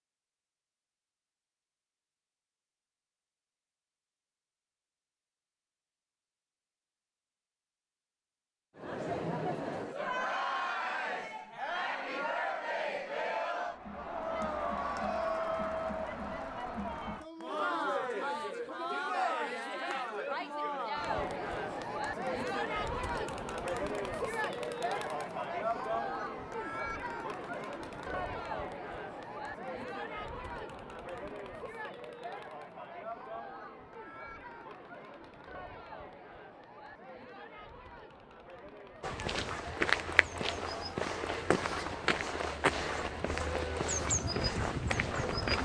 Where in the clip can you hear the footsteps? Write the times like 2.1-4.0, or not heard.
39.0-45.6.